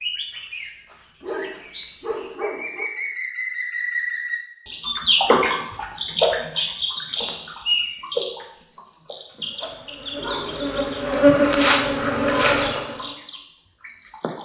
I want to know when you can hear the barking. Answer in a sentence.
You can hear the barking from 1.2 to 2.9 s and from 10.2 to 12.8 s.